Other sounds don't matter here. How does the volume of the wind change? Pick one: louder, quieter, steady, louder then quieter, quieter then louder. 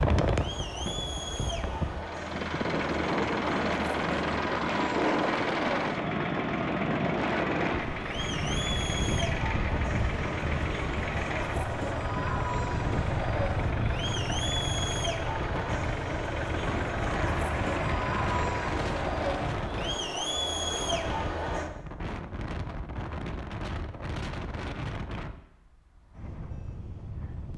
quieter.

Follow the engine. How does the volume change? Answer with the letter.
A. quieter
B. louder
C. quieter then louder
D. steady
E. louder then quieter
D.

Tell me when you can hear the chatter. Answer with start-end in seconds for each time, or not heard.
0.2-21.7.